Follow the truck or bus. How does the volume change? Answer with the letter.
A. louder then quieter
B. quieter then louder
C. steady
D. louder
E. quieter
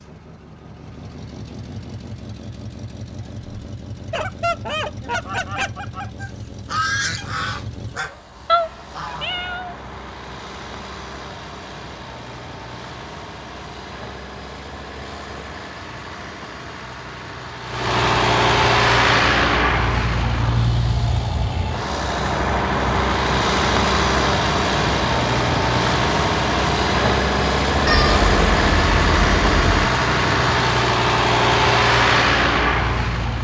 D.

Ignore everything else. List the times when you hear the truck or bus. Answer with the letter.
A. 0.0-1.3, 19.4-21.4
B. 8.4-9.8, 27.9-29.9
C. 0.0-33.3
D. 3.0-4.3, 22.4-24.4
C.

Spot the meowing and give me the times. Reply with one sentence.
You can hear the meowing from 8.4 to 9.8 s and from 27.9 to 29.9 s.